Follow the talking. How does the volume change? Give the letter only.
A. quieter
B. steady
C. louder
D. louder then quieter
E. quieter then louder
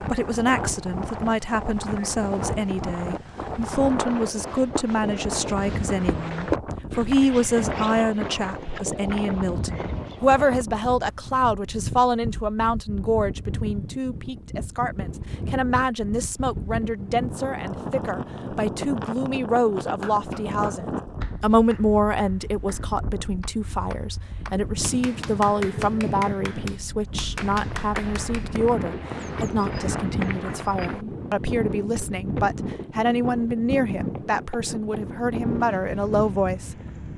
B.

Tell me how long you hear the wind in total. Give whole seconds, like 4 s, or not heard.
37 s.